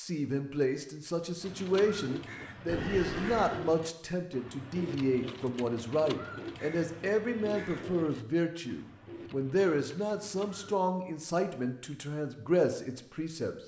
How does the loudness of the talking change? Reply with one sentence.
The volume of the talking stays about the same.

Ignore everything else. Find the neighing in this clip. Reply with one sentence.
The neighing can be heard from 2.6 to 3.6 s.